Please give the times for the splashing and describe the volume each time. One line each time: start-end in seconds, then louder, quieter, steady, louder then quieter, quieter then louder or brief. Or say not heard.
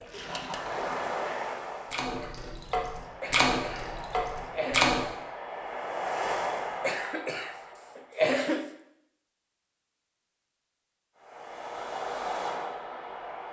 0.0-5.0 louder then quieter.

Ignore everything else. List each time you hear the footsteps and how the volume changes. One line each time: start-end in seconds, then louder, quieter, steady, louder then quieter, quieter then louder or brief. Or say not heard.
not heard.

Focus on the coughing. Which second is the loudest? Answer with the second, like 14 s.
8 s.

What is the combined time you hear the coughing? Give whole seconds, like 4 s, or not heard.
4 s.